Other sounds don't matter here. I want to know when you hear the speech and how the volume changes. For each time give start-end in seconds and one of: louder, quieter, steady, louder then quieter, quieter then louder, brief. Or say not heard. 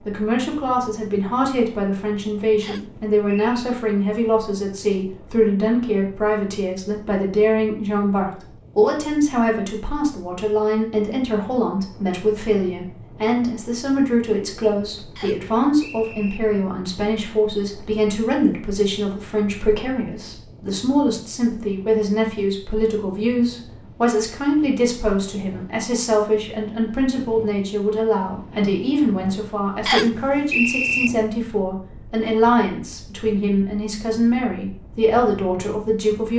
0.1-36.3 steady.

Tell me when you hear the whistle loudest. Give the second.
31 s.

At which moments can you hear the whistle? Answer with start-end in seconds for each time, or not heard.
2.6-3.5, 15.2-16.4, 29.9-31.1.